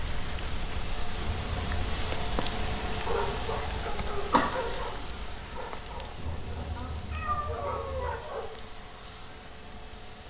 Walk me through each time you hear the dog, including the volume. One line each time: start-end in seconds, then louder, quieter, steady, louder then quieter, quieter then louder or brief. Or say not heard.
3.0-8.4 quieter then louder.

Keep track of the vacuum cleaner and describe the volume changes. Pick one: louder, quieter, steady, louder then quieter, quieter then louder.
quieter.